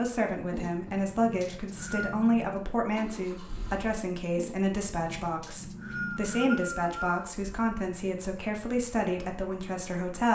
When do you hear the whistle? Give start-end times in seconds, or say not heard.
1.4-2.1, 5.4-7.3.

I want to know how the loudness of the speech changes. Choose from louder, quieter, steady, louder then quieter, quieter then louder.
steady.